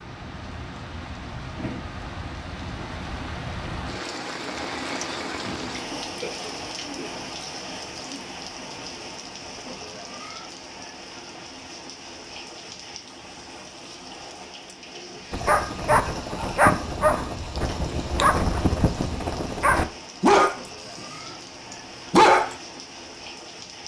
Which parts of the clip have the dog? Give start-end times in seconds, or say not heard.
15.3-21.0, 22.1-22.6.